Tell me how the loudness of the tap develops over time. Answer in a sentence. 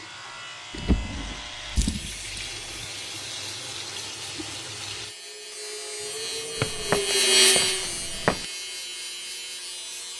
The loudness of the tap goes up.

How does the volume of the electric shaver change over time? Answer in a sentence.
The volume of the electric shaver goes up, then down.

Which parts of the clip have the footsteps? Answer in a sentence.
The footsteps can be heard from 6.5 to 8.4 s.